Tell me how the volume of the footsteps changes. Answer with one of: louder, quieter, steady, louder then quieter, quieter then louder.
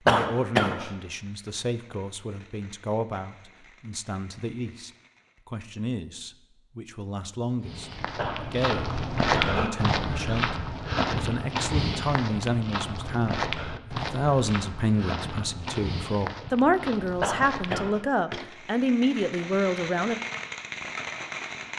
quieter.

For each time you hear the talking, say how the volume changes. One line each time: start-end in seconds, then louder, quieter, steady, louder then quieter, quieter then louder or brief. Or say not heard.
0.1-20.1 louder.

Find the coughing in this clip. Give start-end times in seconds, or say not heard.
0.1-0.9, 8.2-9.7, 17.2-18.0.